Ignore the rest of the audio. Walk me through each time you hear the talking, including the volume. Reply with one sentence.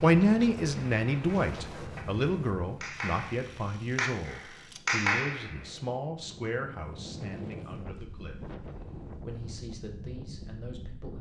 The talking can be heard from 0.0 to 8.6 s, getting quieter; and briefly from 9.2 to 11.1 s.